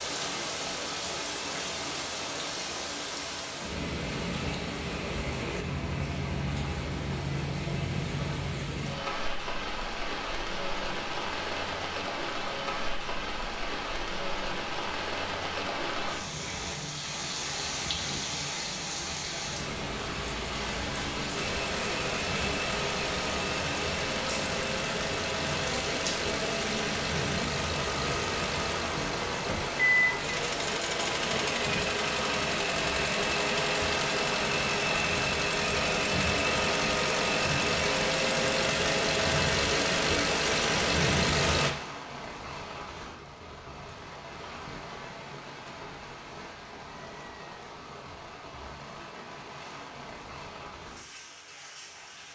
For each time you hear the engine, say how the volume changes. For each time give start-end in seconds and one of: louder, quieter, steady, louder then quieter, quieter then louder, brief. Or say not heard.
21.4-41.7 louder.